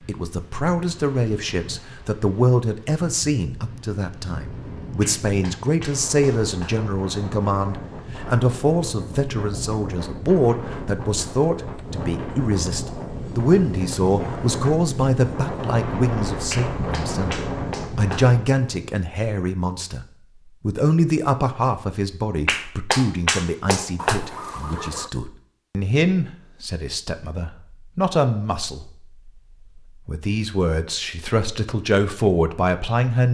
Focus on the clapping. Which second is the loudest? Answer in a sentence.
The loudest moment of the clapping is at 23 seconds.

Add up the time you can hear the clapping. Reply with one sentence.
You can hear the clapping for 5 seconds altogether.